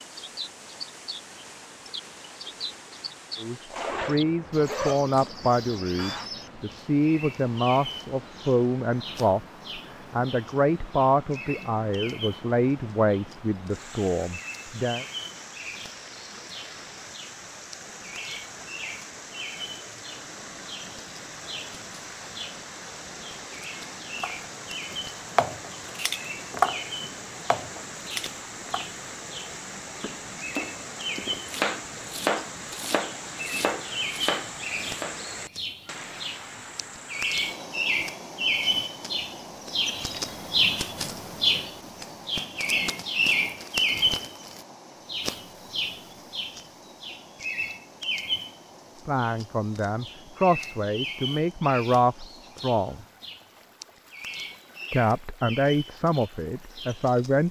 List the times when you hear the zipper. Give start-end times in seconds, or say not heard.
3.7-6.3.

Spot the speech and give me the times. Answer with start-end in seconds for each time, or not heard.
3.4-15.1, 49.0-53.0, 54.9-57.4.